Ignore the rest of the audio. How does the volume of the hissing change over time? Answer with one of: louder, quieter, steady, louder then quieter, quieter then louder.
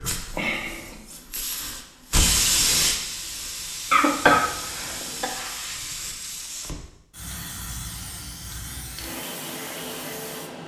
quieter.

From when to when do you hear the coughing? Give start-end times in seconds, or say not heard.
3.9-5.3.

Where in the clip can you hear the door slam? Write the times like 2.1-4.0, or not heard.
not heard.